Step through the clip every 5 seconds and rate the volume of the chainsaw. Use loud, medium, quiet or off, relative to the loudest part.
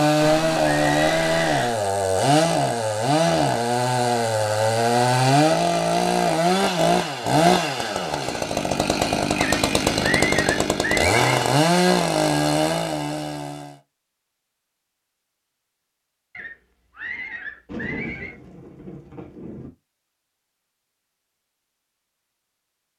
loud, loud, loud, off, off.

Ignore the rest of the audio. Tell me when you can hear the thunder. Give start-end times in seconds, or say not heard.
17.6-19.7.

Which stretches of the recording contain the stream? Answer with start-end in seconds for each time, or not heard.
not heard.